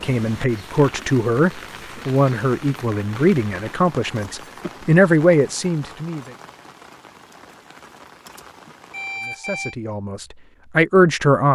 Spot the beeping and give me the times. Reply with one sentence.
The beeping can be heard from 8.9 to 9.8 s.